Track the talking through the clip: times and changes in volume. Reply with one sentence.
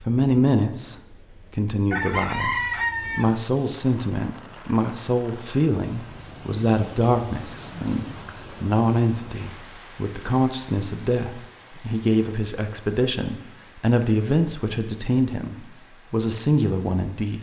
The talking can be heard from 0.1 to 17.3 s, at a steady volume.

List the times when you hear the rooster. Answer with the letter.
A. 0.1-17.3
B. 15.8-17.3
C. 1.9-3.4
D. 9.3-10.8
C.